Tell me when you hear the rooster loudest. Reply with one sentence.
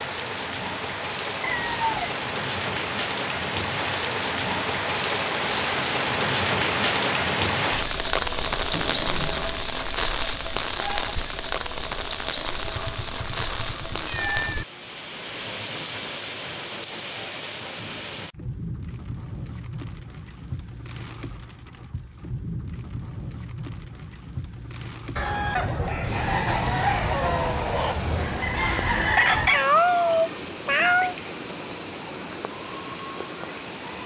The volume of the rooster peaks at 29 seconds.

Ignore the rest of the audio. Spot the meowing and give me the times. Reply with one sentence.
You can hear the meowing from 8.7 to 9.6 s, from 12.6 to 14.7 s and from 29.4 to 31.1 s.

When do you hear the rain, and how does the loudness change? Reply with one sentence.
The rain can be heard from 0.0 to 34.0 s, getting quieter.